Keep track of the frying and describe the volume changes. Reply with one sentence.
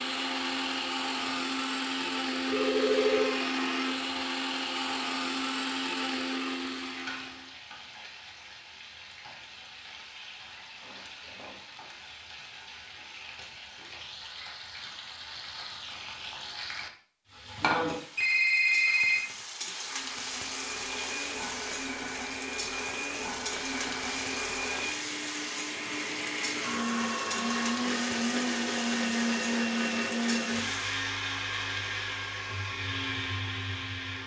The loudness of the frying goes up.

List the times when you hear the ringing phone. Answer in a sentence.
You can hear the ringing phone from 2.5 to 3.4 s, from 18.1 to 19.2 s and from 26.6 to 27.7 s.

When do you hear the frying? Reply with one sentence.
The frying can be heard from 0.0 to 30.8 s.